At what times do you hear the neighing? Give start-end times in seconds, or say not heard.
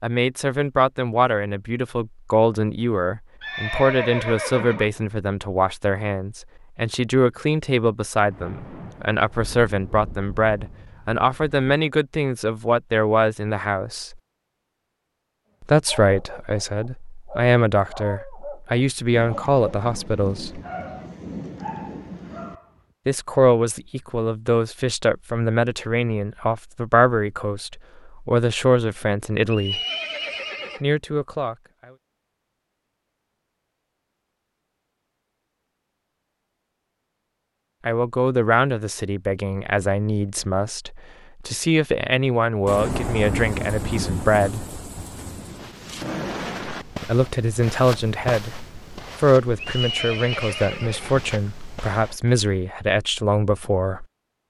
3.4-4.9, 29.5-30.8, 49.6-51.2.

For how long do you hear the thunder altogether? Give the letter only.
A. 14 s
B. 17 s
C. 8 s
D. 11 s
D.